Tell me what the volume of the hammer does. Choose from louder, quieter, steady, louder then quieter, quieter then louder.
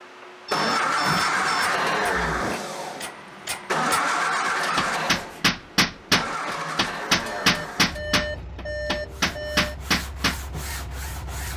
louder.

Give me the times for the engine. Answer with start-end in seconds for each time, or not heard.
0.0-11.5.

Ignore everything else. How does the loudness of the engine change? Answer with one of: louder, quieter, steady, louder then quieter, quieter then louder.
quieter.